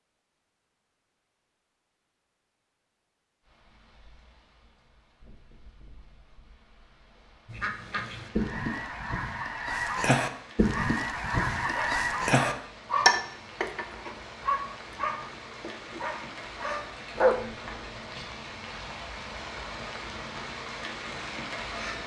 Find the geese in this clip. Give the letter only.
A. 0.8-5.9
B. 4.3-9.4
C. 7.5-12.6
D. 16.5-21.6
C.